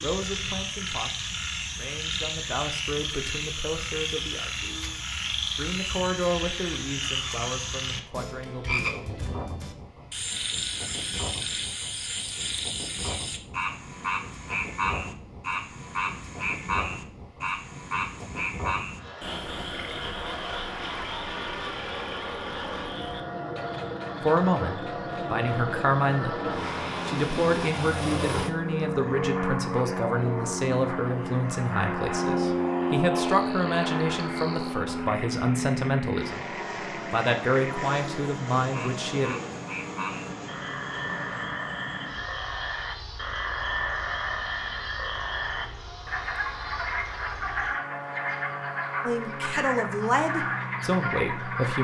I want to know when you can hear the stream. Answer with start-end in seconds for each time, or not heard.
not heard.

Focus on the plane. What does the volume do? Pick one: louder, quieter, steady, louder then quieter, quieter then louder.
louder then quieter.